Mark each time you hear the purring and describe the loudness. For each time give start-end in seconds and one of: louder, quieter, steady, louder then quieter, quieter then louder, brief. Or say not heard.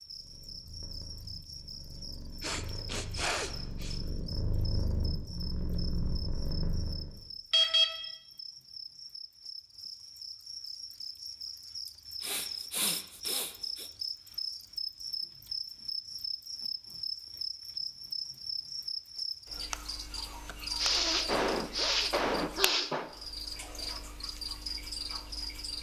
0.0-7.2 louder.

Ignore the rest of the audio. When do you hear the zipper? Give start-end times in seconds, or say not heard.
not heard.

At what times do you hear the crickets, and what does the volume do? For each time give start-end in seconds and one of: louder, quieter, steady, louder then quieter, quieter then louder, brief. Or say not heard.
0.0-25.7 louder.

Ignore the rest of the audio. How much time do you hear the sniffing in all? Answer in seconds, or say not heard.
6 s.